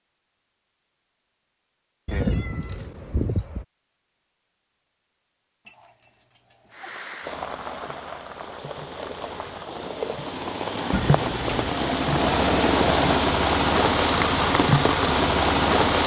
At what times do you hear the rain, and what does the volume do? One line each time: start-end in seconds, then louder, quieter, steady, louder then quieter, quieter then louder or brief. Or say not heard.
6.7-16.0 louder.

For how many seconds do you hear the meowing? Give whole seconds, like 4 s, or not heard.
4 s.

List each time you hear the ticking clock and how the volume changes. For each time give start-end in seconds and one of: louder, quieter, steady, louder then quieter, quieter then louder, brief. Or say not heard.
not heard.